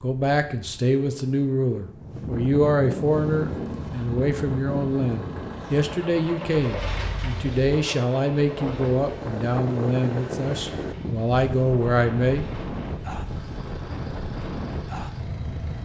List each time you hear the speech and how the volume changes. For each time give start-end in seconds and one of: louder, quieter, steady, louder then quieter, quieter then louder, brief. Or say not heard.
0.0-12.4 steady.